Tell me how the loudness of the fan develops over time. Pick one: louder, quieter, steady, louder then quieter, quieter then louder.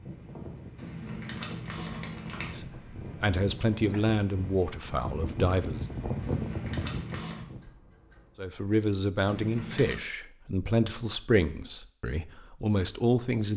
louder.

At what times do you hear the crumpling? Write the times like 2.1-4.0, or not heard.
0.8-2.5, 6.2-7.5, 9.2-9.9.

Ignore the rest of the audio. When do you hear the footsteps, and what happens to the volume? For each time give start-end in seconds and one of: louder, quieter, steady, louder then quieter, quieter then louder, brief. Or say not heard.
not heard.